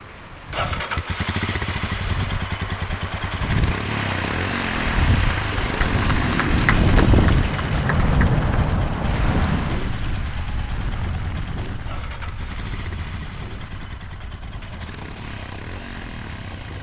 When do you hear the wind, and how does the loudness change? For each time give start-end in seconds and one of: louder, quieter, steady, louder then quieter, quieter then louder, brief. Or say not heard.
0.0-16.7 louder then quieter.